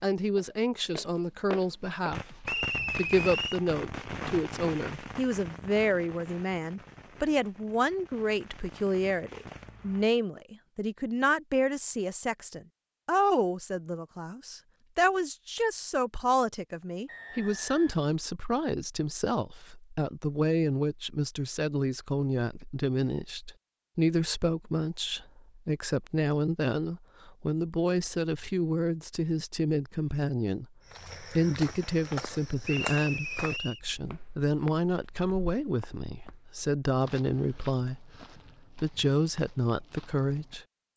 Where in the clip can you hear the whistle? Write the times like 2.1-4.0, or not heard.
2.5-3.6, 17.1-18.0, 32.6-33.8.